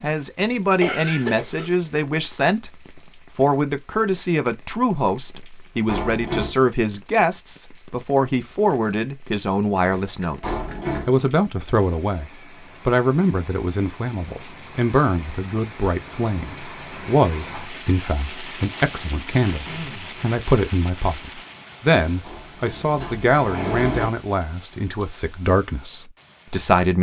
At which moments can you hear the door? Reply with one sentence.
The door can be heard from 5.8 to 6.5 s, from 10.4 to 11.1 s and from 22.2 to 24.1 s.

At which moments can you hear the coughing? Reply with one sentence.
The coughing can be heard from 0.8 to 1.9 s, from 9.9 to 10.9 s and from 19.4 to 20.1 s.